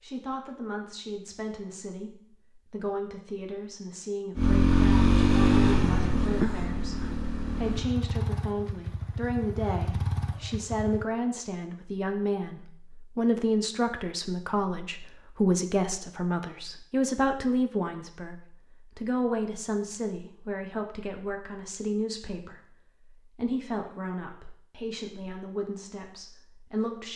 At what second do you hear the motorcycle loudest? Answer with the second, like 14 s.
5 s.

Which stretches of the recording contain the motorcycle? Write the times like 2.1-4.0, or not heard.
4.3-11.1.